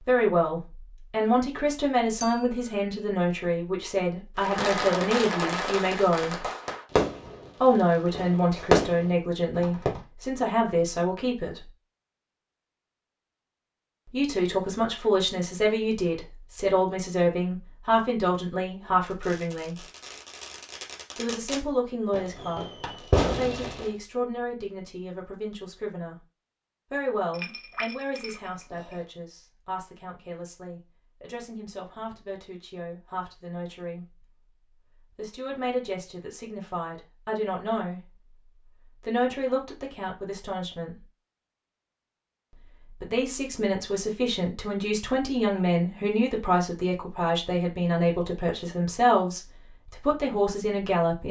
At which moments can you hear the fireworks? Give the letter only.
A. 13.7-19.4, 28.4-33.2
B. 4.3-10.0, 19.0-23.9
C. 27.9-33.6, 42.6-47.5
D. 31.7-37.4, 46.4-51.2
B.